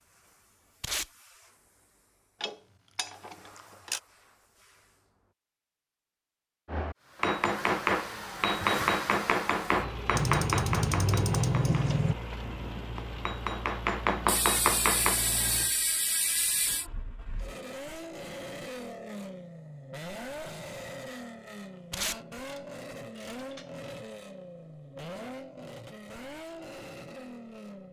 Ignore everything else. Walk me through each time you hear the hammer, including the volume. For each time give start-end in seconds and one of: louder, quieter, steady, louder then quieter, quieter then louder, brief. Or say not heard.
6.7-12.0 quieter
12.9-15.2 brief.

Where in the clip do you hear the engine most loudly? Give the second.
9 s.